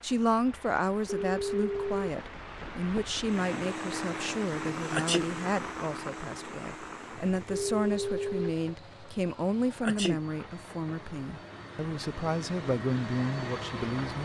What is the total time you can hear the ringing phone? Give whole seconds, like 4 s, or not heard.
2 s.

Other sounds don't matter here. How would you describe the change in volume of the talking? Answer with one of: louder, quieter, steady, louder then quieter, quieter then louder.
steady.